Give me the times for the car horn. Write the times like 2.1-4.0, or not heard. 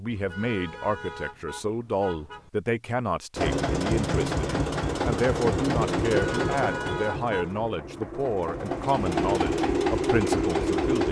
0.1-2.5, 6.1-7.6.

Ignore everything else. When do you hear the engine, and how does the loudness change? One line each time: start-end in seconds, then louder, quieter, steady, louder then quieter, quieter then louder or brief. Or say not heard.
3.4-11.0 quieter then louder.